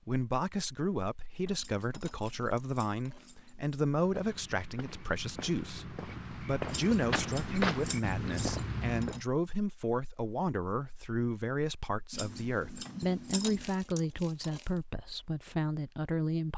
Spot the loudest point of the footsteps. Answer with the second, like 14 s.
8 s.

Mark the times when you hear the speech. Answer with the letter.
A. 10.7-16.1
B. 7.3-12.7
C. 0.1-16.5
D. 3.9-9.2
C.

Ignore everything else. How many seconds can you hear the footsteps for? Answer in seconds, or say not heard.
5 s.